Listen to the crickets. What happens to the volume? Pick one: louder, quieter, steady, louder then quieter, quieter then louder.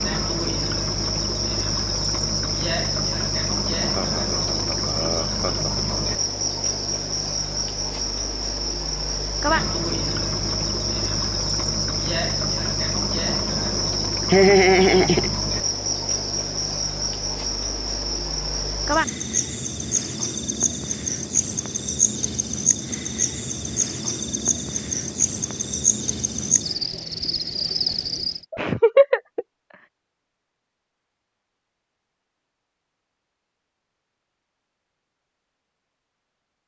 steady.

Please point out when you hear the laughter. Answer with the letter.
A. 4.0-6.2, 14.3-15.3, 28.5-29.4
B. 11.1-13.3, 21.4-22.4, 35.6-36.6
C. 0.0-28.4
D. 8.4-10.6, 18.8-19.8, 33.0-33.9
A.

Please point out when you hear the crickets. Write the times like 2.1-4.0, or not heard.
0.0-28.4.